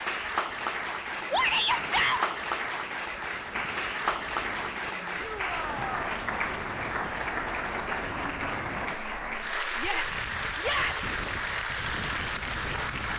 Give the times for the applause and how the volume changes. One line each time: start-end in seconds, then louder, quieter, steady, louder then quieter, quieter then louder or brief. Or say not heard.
0.0-13.1 steady.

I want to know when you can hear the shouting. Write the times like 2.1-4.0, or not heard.
1.3-2.2, 5.2-6.0, 9.8-11.1.